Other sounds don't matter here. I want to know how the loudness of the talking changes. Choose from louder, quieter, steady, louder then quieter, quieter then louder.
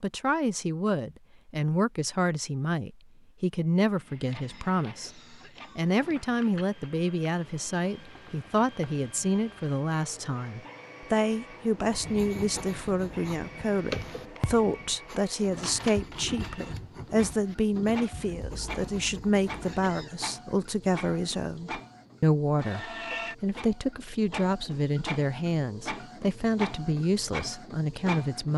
steady.